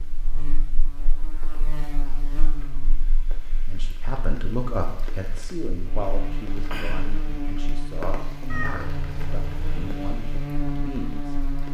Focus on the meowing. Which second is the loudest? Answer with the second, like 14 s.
9 s.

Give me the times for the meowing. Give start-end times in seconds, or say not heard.
8.5-9.9.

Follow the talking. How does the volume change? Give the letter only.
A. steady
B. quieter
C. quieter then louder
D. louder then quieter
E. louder
B.